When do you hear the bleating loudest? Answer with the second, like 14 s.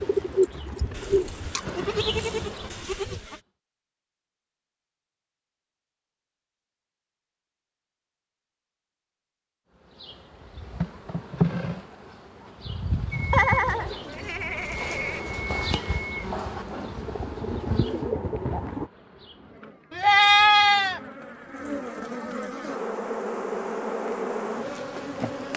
20 s.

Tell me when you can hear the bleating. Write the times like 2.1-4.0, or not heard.
0.9-3.4, 13.3-15.2, 19.9-21.0.